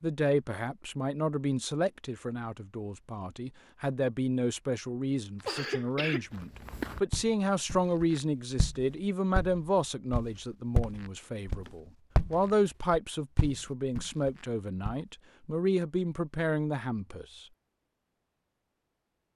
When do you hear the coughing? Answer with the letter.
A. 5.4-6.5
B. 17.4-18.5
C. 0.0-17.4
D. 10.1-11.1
A.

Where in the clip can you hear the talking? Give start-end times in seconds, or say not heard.
0.0-17.4.